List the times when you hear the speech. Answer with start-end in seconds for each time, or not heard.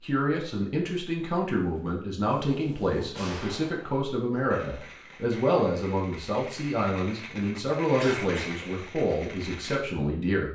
0.0-10.4.